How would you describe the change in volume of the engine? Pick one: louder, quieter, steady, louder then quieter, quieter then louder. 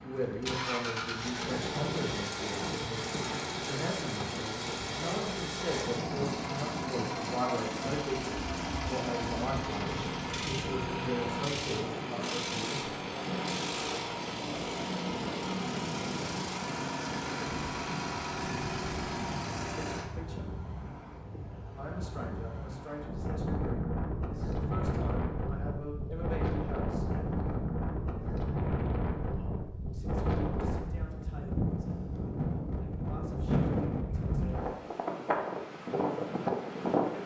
steady.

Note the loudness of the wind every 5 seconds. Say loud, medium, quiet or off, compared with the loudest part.
medium, medium, medium, medium, medium, loud, loud, loud.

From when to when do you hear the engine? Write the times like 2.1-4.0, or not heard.
0.0-20.1.